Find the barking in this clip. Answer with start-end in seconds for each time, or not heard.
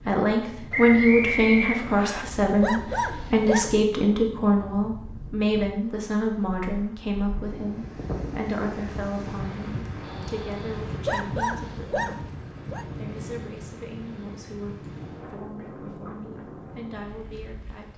2.4-3.9, 10.9-12.8.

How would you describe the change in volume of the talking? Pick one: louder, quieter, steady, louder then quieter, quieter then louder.
quieter.